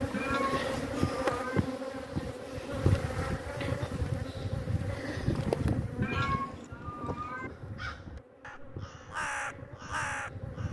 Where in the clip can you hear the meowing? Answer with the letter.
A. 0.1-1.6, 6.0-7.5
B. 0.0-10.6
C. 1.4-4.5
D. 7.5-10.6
A.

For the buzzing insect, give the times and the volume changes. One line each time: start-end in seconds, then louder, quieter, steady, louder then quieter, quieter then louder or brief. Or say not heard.
0.0-10.6 quieter.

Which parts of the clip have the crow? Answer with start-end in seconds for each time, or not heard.
7.5-10.6.